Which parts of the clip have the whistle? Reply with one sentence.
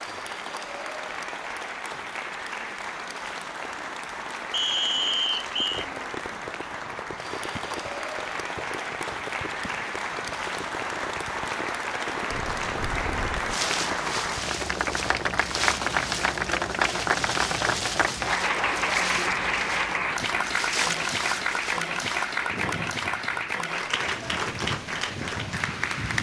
The whistle can be heard from 4.5 to 5.8 s.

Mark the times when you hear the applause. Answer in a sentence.
You can hear the applause from 0.0 to 26.1 s.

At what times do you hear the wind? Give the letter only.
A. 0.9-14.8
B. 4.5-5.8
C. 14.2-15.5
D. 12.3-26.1
D.